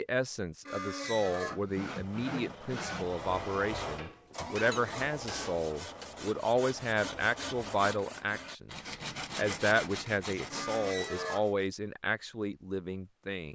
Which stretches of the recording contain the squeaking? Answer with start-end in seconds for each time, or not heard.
0.7-1.6, 4.5-5.0, 10.5-11.4.